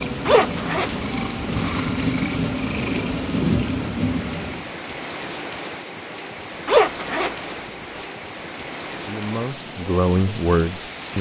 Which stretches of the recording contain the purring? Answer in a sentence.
The purring can be heard from 0.0 to 4.8 s.